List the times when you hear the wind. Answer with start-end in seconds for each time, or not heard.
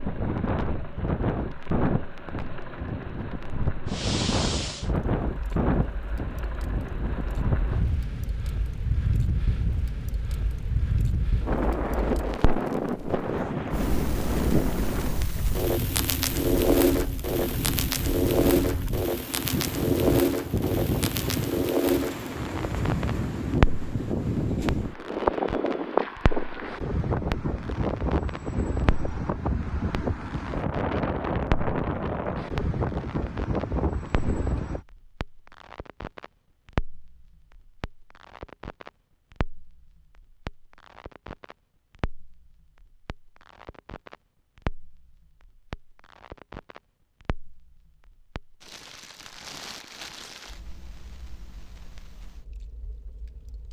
0.0-34.8.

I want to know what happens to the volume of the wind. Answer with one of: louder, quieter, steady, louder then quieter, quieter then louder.
steady.